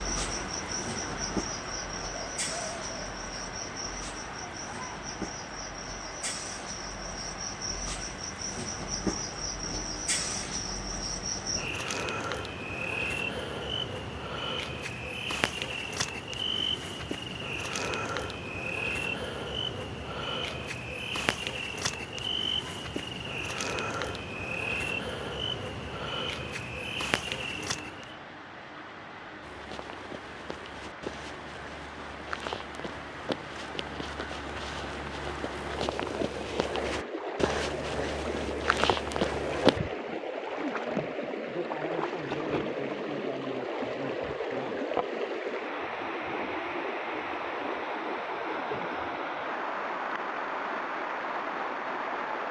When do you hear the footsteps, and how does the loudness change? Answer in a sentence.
The footsteps can be heard from 29.4 to 39.8 s, getting louder.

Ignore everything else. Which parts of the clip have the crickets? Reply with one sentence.
You can hear the crickets from 0.0 to 28.1 s.